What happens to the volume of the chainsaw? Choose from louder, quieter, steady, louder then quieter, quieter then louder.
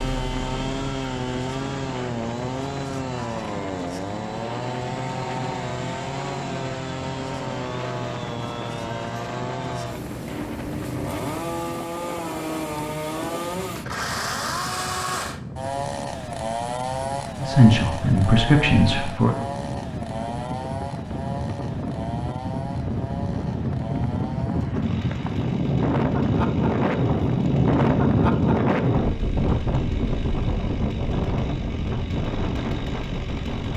quieter.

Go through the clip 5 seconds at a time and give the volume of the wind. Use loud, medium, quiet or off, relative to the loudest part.
quiet, quiet, quiet, quiet, medium, loud, medium.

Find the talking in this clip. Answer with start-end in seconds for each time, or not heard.
17.4-19.4.